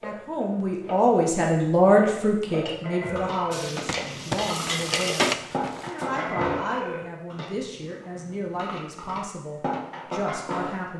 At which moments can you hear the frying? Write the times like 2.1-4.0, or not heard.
3.5-5.3.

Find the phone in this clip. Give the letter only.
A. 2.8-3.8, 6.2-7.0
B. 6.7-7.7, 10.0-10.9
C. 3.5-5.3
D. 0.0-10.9
A.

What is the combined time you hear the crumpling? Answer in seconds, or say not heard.
2 s.